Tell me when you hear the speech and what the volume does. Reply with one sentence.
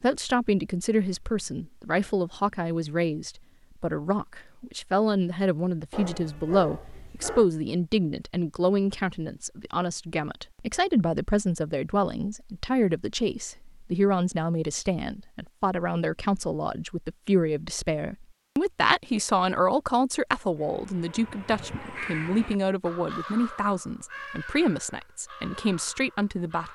The speech can be heard from 0.0 to 26.7 s, at a steady volume.